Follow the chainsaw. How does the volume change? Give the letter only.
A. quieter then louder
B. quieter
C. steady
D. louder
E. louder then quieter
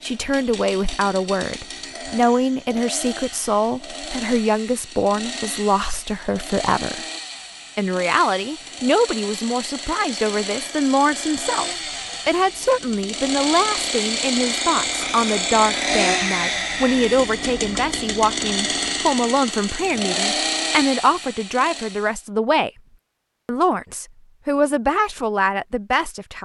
D.